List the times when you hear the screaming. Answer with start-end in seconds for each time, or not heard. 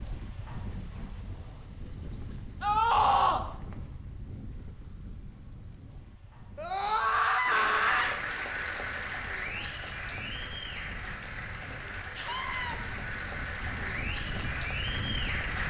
2.6-3.5, 6.5-8.2, 12.2-12.8.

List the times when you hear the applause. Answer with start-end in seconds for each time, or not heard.
7.5-15.6.